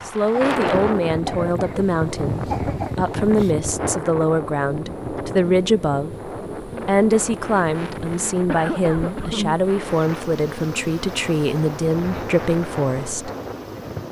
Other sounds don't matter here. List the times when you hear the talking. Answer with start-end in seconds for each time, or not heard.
0.1-6.2, 6.8-13.3.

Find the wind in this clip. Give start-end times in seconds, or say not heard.
0.0-14.0.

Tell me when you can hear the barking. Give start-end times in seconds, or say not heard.
not heard.